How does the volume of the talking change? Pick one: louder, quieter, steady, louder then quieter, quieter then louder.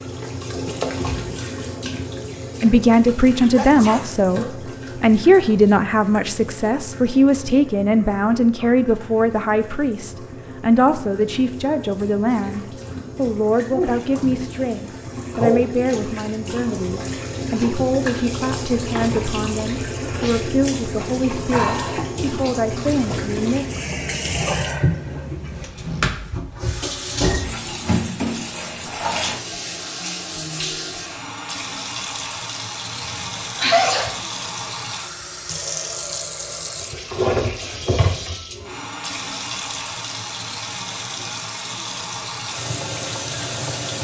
quieter.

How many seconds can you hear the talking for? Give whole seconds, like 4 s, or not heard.
21 s.